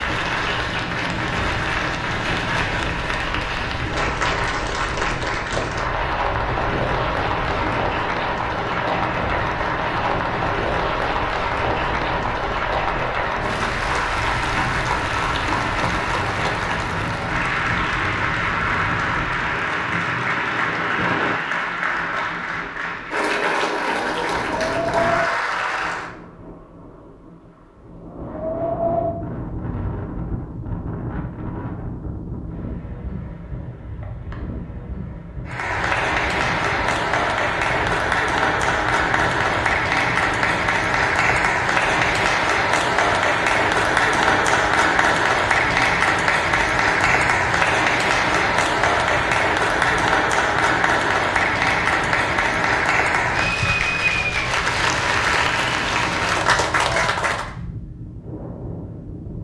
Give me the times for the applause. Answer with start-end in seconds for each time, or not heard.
0.0-26.1, 35.5-57.5.